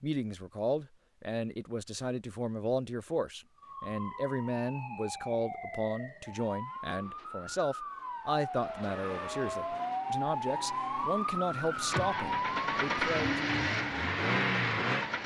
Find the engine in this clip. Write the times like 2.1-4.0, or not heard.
11.8-15.2.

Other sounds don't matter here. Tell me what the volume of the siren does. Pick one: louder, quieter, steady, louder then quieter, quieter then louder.
louder.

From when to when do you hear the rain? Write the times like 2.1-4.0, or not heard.
not heard.